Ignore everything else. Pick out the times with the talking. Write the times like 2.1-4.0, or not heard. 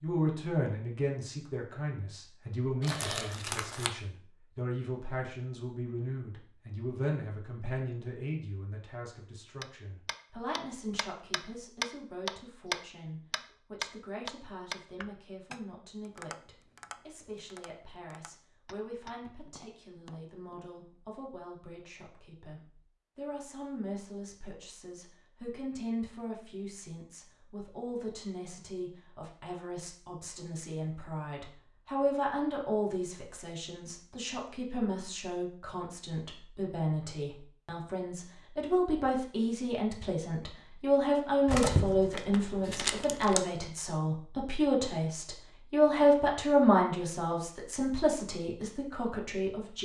0.0-49.8.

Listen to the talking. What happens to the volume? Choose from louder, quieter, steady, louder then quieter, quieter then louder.
quieter then louder.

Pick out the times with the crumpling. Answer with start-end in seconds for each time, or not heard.
2.8-3.9, 41.5-43.5.